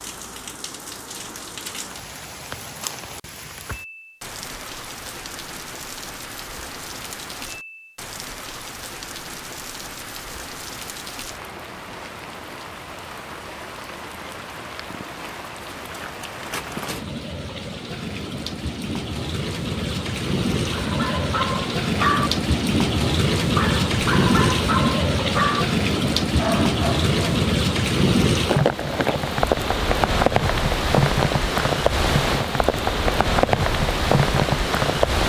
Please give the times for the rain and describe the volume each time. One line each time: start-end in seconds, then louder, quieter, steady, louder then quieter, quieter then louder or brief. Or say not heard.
0.0-35.2 louder.